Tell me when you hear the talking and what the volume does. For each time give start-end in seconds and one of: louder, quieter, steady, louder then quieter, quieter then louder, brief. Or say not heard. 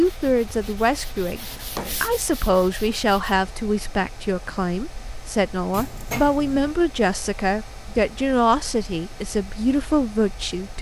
0.0-10.7 steady.